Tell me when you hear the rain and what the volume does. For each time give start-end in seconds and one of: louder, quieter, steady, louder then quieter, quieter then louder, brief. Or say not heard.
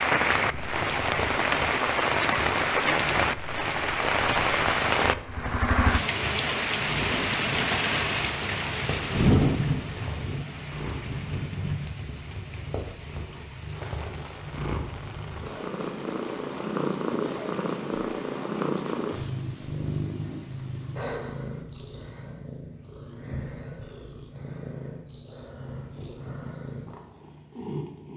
0.0-19.3 quieter.